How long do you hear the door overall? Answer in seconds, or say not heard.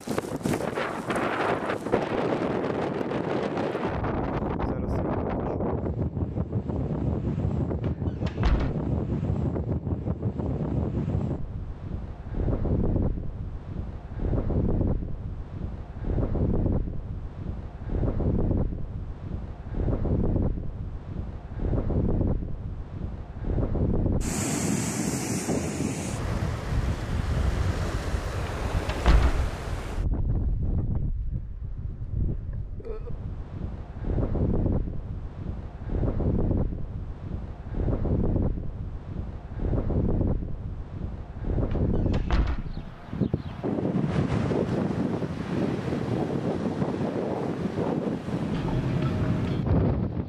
3 s.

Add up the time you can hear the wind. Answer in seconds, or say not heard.
50 s.